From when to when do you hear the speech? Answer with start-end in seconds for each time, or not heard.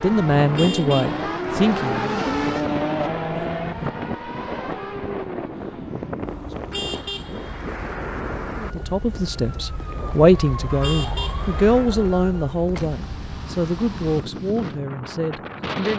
0.0-2.1, 8.6-15.9.